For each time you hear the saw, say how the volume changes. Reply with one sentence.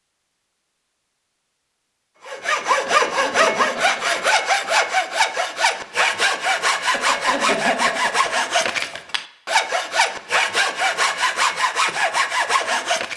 The saw can be heard from 2.2 to 13.1 s, at a steady volume.